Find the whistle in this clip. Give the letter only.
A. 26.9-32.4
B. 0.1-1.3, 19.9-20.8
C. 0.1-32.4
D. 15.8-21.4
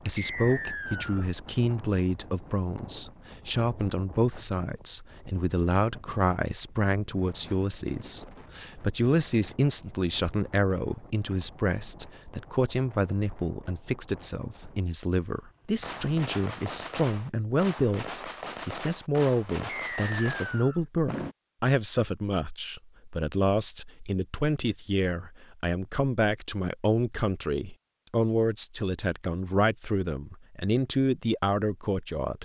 B.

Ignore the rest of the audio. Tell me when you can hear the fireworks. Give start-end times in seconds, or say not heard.
15.8-21.4.